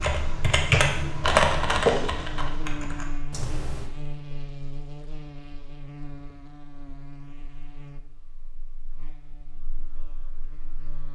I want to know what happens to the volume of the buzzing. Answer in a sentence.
The volume of the buzzing goes down.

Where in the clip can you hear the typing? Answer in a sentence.
The typing can be heard from 0.0 to 3.9 s.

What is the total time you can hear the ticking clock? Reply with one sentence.
The ticking clock can't be heard in this clip.